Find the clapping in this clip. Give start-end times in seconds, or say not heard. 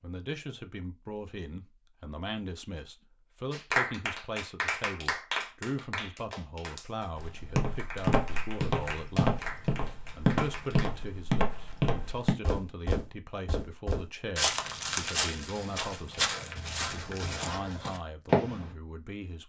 3.5-10.9.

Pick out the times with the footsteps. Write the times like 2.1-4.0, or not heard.
7.2-18.8.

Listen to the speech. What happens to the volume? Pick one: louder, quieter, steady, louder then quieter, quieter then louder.
steady.